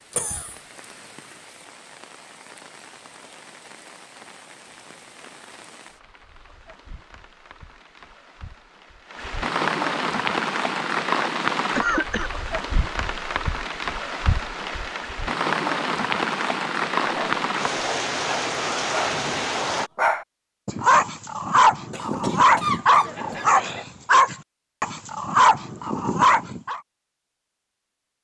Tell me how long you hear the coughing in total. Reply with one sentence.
The coughing can be heard for 3 seconds in total.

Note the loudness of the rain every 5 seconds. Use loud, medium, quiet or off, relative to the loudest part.
quiet, medium, loud, loud, off, off.